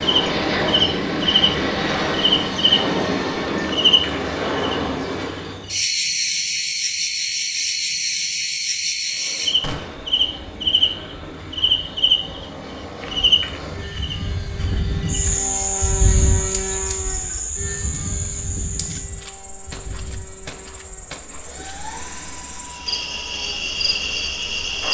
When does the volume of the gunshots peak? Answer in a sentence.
The volume of the gunshots peaks at 10 seconds.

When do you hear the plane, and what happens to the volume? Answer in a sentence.
You can hear the plane from 0.0 to 5.7 s, at a steady volume; and from 9.1 to 24.8 s, getting louder then quieter.